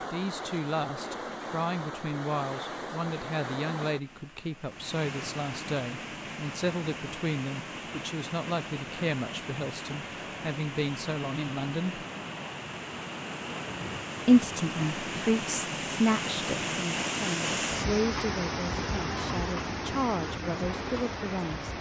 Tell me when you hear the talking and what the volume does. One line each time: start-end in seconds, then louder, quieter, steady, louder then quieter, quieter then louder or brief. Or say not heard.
0.1-12.1 steady
14.2-21.7 quieter then louder.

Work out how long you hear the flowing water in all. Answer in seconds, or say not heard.
22 s.